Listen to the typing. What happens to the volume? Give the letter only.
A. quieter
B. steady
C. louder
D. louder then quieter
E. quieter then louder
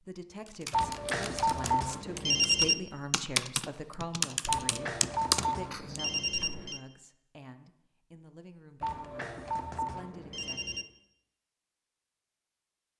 C.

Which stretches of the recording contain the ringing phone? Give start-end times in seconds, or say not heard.
0.7-2.8, 4.5-6.8, 8.8-10.8.